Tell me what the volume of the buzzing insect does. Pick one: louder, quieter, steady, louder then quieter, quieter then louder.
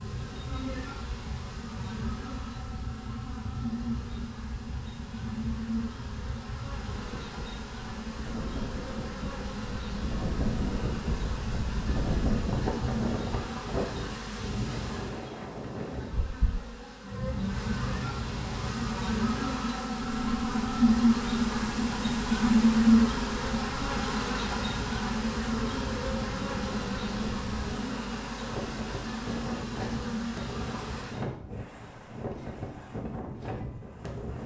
louder then quieter.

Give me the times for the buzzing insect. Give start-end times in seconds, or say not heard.
0.0-31.2.